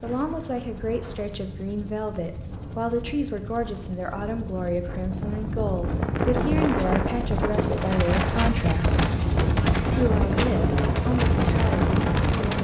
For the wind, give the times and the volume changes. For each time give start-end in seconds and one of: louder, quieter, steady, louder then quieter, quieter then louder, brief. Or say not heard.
0.0-12.5 louder.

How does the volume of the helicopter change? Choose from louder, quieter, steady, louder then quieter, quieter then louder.
louder.